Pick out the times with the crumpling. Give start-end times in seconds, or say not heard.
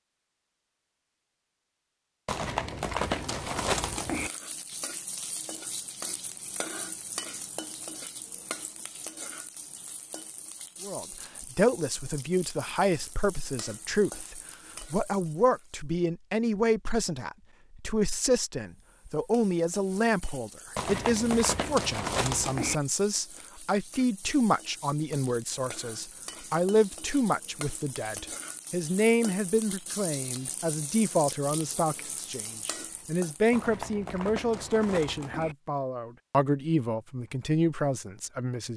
2.2-4.3, 20.8-22.8, 33.5-35.5.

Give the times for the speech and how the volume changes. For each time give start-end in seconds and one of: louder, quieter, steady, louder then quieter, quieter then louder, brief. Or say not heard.
10.8-38.7 steady.